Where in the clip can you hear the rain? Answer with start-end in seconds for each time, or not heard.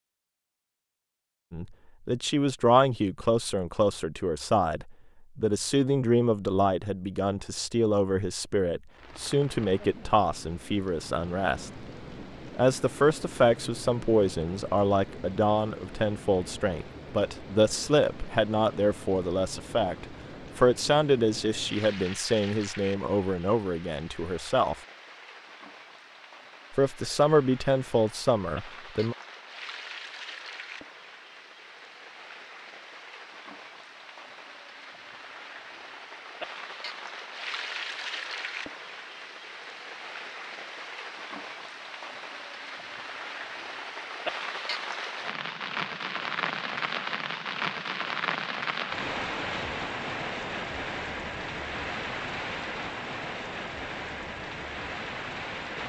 8.9-55.8.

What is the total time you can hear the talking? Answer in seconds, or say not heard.
25 s.